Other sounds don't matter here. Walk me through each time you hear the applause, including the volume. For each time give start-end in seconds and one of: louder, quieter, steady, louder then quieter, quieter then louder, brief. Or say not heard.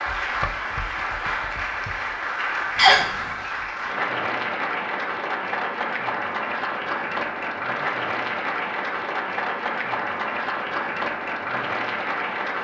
0.0-12.5 steady.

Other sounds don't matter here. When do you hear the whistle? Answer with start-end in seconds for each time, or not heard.
2.8-3.5.